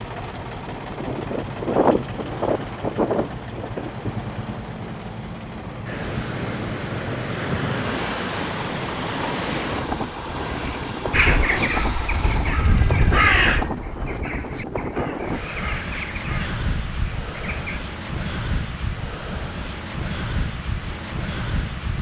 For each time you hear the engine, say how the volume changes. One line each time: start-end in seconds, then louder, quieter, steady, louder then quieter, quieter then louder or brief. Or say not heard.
0.0-13.9 steady.